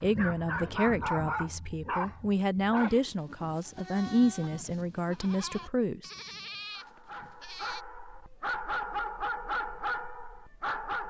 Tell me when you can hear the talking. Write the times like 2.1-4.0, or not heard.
0.0-6.1.